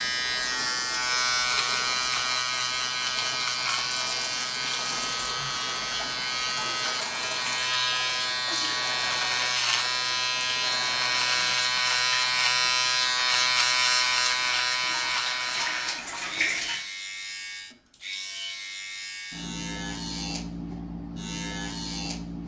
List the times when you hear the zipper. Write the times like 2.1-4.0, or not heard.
not heard.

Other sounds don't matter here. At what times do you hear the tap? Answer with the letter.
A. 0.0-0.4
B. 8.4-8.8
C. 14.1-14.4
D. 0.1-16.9
D.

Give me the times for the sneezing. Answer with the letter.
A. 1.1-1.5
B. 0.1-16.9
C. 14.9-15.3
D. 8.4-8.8
D.